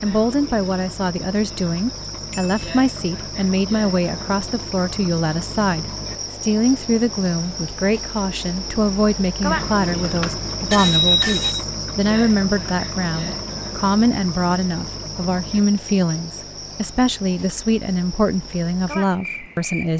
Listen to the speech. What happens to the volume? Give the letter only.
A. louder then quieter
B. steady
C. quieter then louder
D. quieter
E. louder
B.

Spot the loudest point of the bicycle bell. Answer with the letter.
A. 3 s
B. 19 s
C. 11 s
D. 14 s
C.